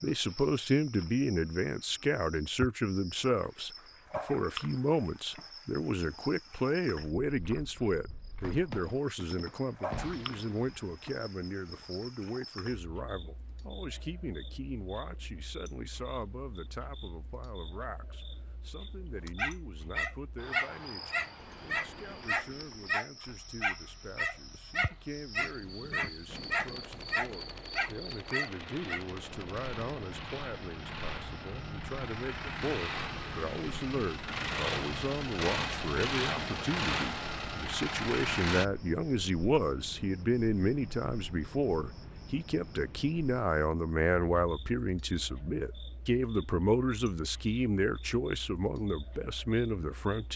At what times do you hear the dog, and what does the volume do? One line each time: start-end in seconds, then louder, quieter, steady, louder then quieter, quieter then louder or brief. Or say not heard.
19.2-29.1 steady.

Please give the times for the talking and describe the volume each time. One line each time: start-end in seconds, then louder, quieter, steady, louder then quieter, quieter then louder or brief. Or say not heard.
0.0-50.3 quieter then louder.